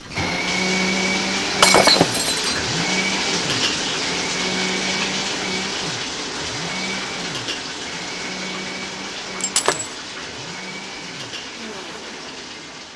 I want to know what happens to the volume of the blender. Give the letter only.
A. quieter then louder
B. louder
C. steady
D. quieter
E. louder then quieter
D.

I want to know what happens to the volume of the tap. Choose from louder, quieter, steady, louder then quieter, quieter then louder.
quieter.